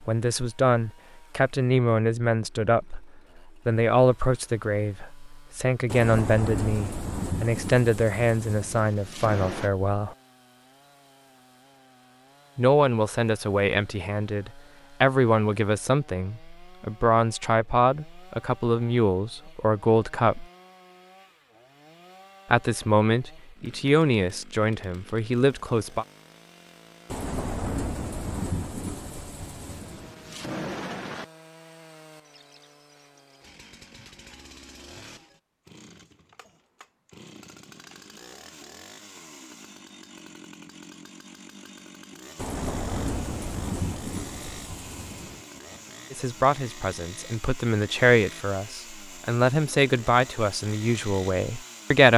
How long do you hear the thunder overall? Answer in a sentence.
The thunder can be heard for 11 seconds in total.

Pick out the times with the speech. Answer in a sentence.
The speech can be heard from 0.1 to 10.2 s, from 12.6 to 20.4 s, from 22.5 to 26.1 s and from 46.1 to 52.1 s.